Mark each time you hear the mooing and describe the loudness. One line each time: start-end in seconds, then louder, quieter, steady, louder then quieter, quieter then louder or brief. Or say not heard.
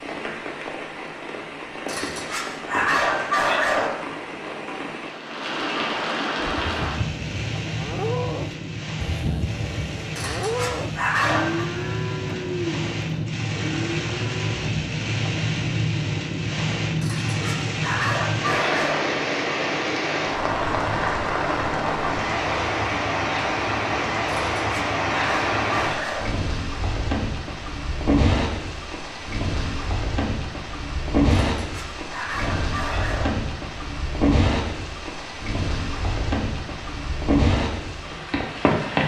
6.6-14.7 steady.